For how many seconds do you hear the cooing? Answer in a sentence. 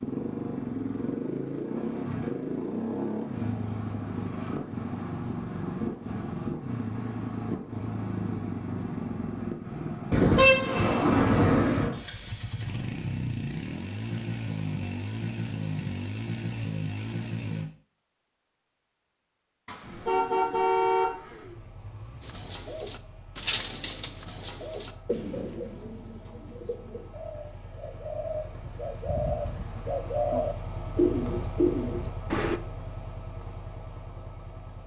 You can hear the cooing for 10 seconds altogether.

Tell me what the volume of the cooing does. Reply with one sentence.
The loudness of the cooing goes down, then up.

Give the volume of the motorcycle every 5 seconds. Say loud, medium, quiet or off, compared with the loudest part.
loud, loud, loud, loud, quiet, quiet, medium.